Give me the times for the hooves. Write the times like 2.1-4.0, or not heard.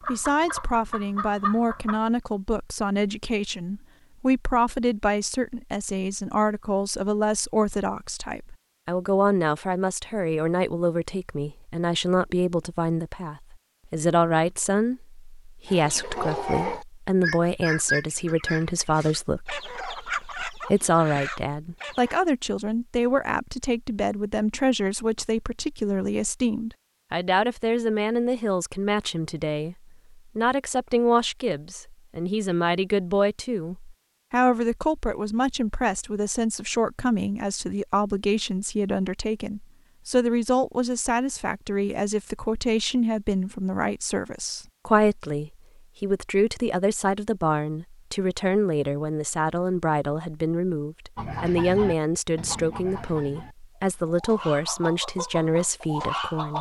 not heard.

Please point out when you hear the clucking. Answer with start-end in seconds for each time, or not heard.
0.0-2.0, 15.7-22.1, 51.1-56.5.